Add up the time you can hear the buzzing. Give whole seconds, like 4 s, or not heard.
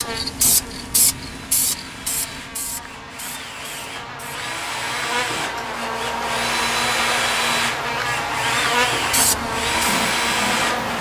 11 s.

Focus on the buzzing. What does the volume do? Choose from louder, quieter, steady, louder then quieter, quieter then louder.
louder.